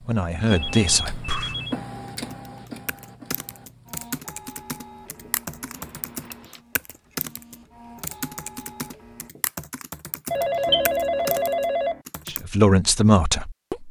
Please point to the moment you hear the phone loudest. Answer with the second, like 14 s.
11 s.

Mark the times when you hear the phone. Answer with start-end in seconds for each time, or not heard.
0.5-1.8, 5.8-6.6, 10.3-11.9.